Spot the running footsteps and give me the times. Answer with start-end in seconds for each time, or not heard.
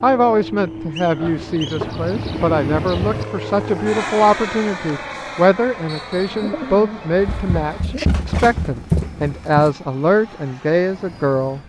7.1-9.8.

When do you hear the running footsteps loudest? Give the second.
9 s.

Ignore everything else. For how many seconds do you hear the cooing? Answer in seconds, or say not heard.
4 s.